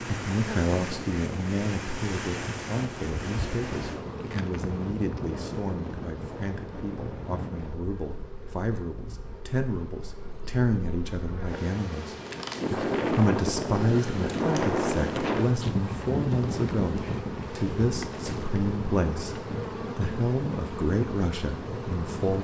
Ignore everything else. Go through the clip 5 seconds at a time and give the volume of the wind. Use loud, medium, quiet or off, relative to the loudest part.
medium, medium, loud, loud, medium.